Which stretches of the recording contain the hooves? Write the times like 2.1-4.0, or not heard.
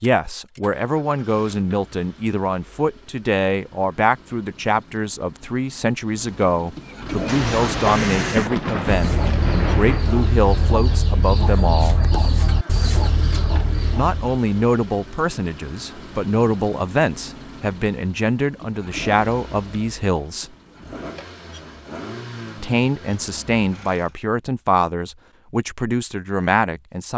not heard.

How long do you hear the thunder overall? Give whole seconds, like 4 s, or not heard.
3 s.